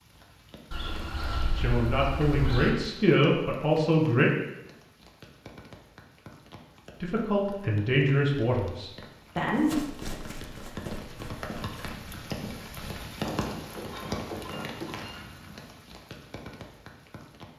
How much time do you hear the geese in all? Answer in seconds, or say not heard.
4 s.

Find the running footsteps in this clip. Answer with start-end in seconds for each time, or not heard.
9.6-14.9.